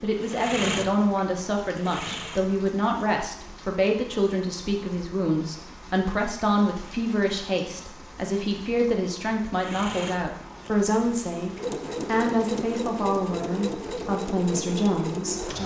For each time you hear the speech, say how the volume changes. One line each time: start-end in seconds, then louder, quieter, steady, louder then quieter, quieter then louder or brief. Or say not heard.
0.0-15.6 steady.